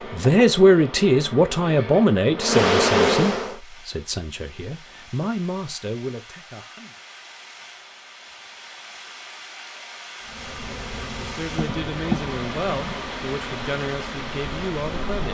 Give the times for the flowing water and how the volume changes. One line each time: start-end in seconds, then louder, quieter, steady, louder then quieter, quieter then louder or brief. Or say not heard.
3.4-15.2 louder.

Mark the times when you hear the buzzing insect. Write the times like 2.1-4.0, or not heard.
0.0-3.5, 10.2-15.2.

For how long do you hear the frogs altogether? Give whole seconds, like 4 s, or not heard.
not heard.